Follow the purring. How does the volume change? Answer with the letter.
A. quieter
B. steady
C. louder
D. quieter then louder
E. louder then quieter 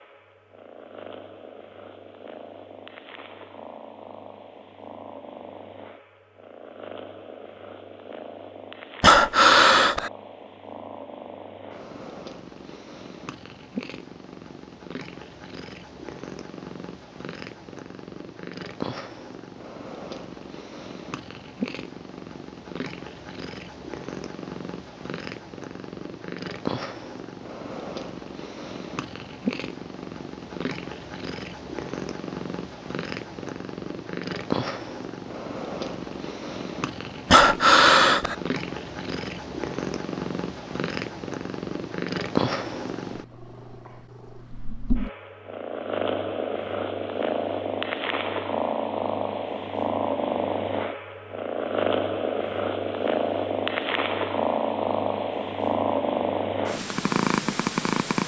C.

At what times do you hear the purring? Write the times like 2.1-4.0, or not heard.
0.0-58.2.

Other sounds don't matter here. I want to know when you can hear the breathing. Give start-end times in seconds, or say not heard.
9.0-10.1, 37.3-38.4.